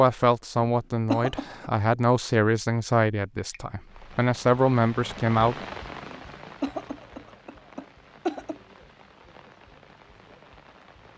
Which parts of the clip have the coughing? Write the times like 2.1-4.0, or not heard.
0.6-1.6, 6.0-8.6.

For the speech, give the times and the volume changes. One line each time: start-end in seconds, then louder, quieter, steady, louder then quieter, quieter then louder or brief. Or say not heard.
0.0-5.5 quieter then louder.